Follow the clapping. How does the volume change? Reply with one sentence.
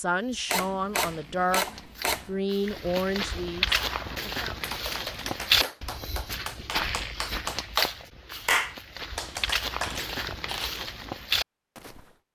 The volume of the clapping goes up, then down.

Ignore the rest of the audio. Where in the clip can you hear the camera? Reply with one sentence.
The camera can be heard from 0.5 to 2.4 s and from 9.9 to 10.8 s.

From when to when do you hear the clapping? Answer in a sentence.
You can hear the clapping from 3.6 to 10.2 s.